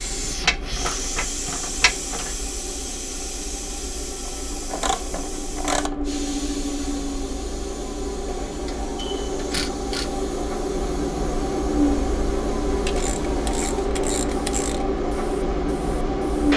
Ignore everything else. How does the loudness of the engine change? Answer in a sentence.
The loudness of the engine goes up.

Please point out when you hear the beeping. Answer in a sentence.
You can hear the beeping from 8.3 to 9.4 s.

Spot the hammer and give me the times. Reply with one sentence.
You can't hear the hammer here.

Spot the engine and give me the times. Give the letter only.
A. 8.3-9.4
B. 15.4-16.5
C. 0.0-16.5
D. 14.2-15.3
C.